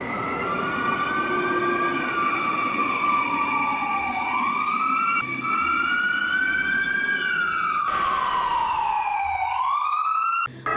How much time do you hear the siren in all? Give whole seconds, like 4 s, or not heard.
11 s.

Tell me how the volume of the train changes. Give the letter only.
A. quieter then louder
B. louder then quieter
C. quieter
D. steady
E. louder
C.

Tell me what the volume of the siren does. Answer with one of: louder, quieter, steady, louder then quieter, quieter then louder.
louder.